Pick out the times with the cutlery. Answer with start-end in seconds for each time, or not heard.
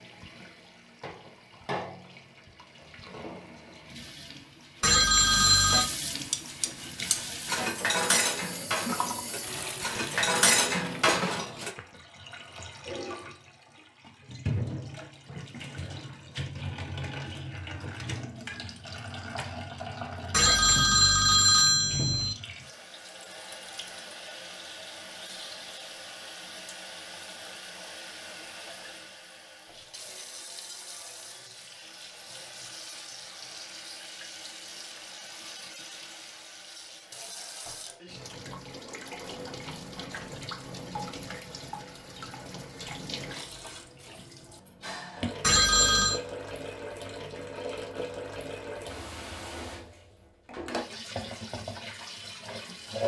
6.3-11.7.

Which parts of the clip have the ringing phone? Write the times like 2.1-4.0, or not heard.
4.8-5.9, 20.3-22.4, 45.4-46.2.